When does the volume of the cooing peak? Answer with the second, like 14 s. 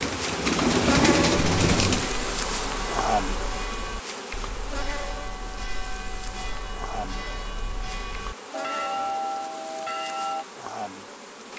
1 s.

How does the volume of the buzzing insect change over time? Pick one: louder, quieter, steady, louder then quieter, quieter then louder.
quieter.